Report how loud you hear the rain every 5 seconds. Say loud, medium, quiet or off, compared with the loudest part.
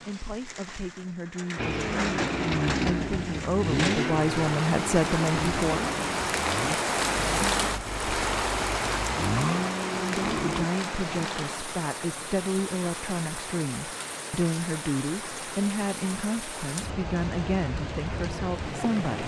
medium, loud, medium, medium.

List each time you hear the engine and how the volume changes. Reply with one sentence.
You can hear the engine from 1.6 to 10.7 s, getting quieter then louder.